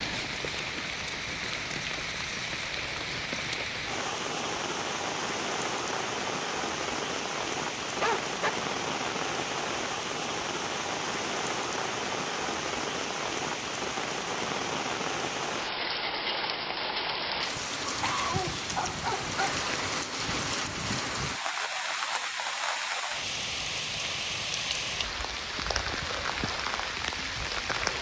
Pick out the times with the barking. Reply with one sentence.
You can hear the barking from 8.0 to 8.5 s and from 17.9 to 19.6 s.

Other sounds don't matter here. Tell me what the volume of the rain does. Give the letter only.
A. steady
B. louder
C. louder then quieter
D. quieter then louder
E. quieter
A.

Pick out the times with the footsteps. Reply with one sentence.
The footsteps can't be heard in this clip.